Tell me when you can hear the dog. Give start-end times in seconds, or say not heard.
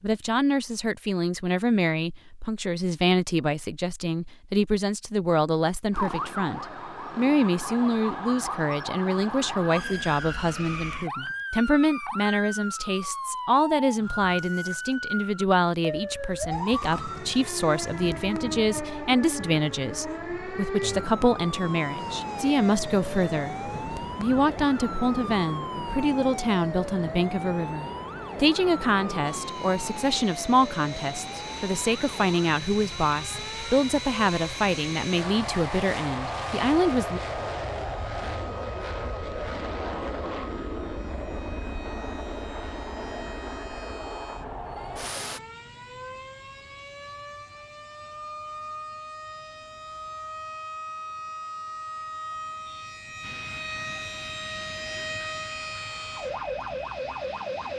not heard.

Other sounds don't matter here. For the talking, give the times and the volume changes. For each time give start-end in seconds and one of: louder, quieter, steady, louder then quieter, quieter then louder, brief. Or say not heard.
0.0-37.2 steady.